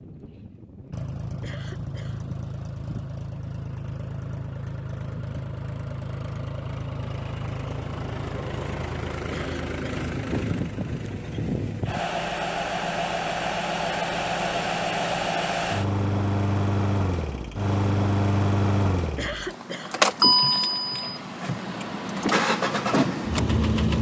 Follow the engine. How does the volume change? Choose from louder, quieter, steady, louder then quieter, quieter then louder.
louder.